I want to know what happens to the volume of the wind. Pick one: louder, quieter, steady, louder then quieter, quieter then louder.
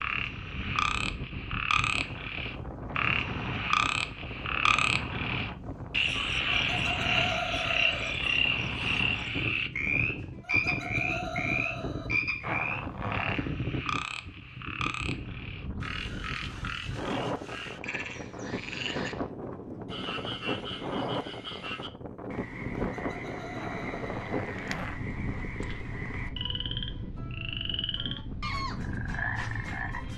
steady.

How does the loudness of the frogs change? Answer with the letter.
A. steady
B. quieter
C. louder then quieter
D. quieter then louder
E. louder
B.